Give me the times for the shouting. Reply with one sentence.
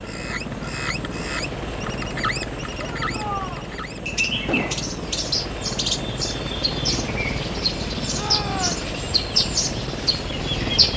You can hear the shouting from 2.8 to 3.7 s and from 8.1 to 8.8 s.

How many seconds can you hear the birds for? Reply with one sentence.
The birds can be heard for 11 seconds in total.